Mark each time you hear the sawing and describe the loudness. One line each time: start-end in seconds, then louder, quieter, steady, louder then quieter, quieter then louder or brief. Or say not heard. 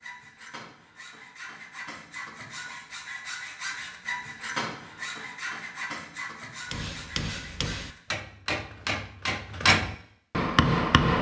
0.0-8.0 louder then quieter.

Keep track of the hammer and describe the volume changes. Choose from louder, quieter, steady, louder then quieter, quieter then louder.
louder.